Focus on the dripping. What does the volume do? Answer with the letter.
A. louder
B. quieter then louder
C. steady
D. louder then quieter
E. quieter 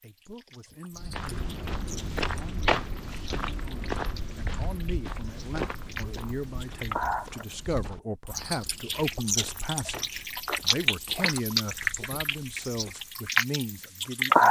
A.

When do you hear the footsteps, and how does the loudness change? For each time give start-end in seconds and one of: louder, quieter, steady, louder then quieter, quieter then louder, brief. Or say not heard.
0.9-13.3 quieter.